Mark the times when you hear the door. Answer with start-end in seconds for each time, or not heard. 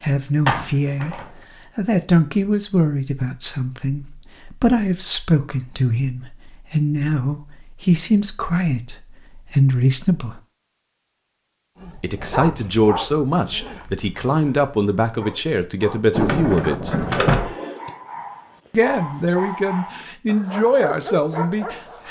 0.5-1.3, 16.1-17.6.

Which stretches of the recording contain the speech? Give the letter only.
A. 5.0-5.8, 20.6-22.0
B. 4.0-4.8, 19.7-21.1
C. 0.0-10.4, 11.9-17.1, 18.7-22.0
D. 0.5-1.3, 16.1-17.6
C.